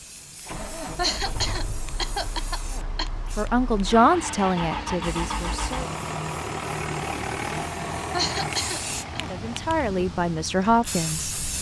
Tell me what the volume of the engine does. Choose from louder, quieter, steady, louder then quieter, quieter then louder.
louder then quieter.